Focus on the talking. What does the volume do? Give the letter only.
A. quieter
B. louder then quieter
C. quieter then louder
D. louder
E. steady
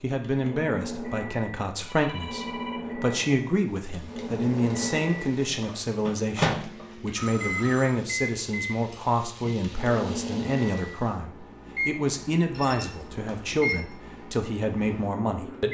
E.